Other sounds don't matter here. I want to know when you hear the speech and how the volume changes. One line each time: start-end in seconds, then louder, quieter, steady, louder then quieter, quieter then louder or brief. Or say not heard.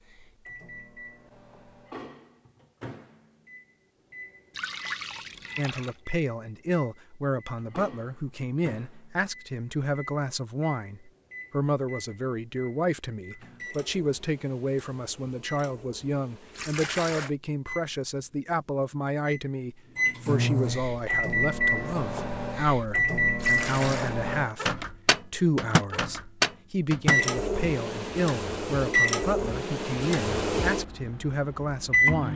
5.5-32.3 steady.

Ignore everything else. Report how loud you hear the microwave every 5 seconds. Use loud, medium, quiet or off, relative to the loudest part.
quiet, quiet, quiet, quiet, loud, loud, loud.